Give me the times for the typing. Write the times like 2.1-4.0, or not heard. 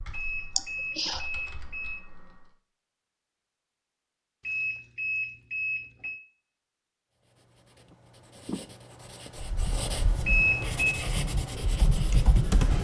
0.0-2.5, 9.3-12.8.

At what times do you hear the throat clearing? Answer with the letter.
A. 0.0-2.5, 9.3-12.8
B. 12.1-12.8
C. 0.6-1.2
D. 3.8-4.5
C.